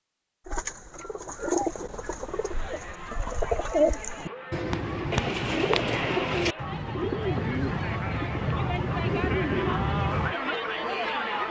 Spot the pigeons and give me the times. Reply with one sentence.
The pigeons can be heard from 0.5 to 10.3 s.